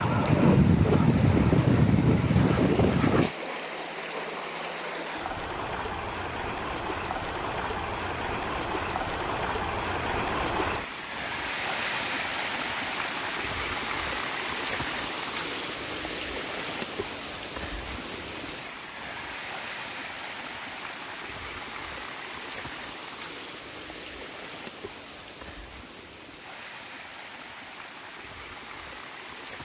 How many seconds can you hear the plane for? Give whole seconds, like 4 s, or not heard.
3 s.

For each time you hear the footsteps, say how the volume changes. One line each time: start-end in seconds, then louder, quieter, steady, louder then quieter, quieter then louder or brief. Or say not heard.
not heard.